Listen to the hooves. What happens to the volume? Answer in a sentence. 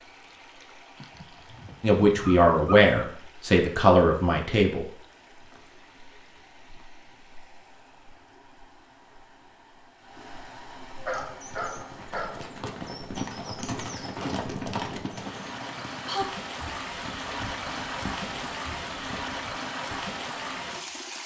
The loudness of the hooves goes up, then down.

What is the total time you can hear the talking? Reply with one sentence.
You can hear the talking for 3 seconds altogether.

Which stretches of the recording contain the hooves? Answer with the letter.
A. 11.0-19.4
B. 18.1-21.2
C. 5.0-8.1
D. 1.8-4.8
A.